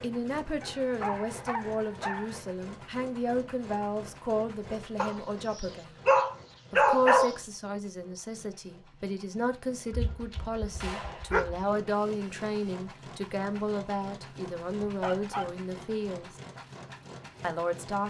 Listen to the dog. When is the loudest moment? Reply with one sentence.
The volume of the dog peaks at 7 seconds.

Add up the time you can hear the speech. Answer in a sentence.
You can hear the speech for 16 seconds altogether.